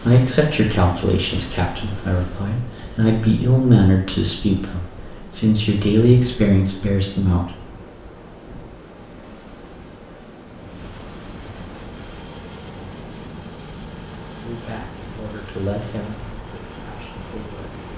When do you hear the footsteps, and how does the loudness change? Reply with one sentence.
You can't hear the footsteps here.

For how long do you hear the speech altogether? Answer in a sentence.
The speech can be heard for 11 seconds in total.